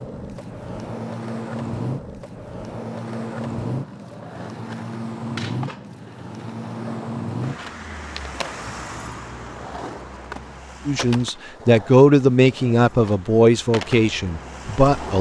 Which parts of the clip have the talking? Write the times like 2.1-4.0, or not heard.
10.8-15.1.